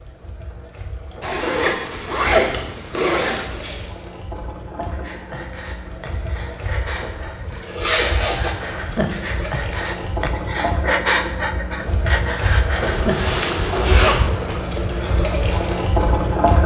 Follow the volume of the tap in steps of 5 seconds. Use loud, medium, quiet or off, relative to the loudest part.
quiet, quiet, medium, loud.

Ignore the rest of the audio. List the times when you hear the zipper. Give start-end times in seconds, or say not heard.
1.2-3.9, 7.6-9.5, 12.8-14.3.